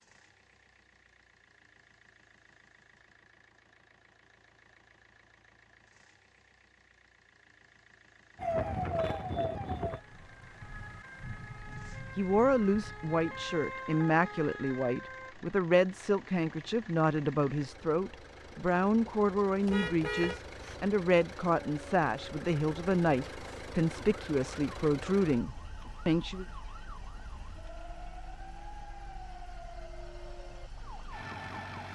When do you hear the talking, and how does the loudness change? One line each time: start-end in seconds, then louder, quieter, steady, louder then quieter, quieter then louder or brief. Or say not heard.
11.8-26.4 steady.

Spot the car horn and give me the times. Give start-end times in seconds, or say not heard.
19.6-20.9.